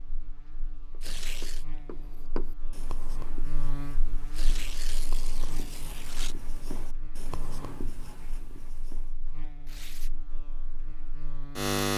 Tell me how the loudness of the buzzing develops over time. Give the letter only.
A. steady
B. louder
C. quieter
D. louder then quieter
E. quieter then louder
D.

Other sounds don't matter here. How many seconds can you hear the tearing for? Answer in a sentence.
The tearing can be heard for 3 seconds in total.